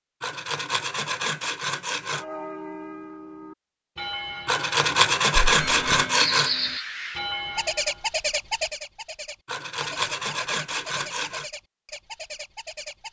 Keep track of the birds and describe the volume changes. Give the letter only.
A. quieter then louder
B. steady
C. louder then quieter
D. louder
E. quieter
E.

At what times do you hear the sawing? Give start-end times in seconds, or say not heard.
0.2-2.2, 4.5-6.5, 9.4-11.5.